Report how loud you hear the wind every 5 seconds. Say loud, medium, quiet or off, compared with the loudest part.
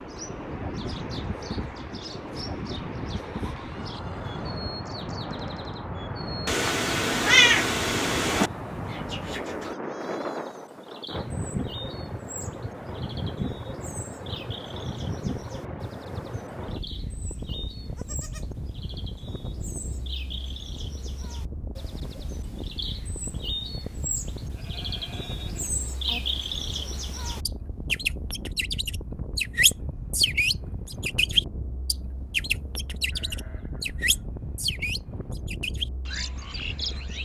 loud, loud, loud, loud, medium, medium, medium, medium.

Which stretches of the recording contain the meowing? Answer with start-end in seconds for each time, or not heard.
6.5-8.5.